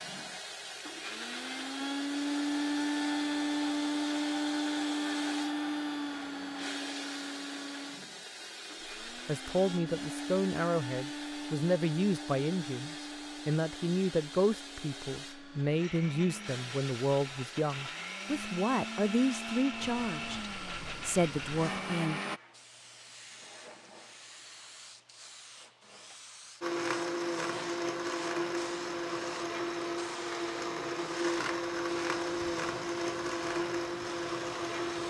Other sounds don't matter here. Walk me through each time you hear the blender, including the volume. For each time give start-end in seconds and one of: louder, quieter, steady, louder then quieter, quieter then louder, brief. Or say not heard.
0.0-22.4 quieter then louder
26.6-35.0 steady.